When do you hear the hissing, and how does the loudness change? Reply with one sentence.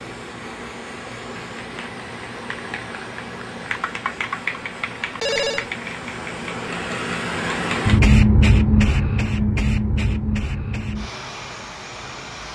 You can hear the hissing from 0.0 to 12.5 s, getting louder then quieter.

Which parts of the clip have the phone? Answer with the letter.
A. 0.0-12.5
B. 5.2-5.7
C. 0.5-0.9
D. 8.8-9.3
B.